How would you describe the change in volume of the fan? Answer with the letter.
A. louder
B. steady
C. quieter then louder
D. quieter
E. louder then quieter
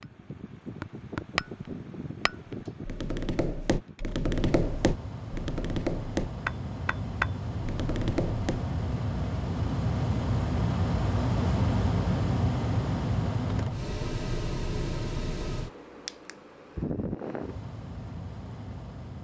E.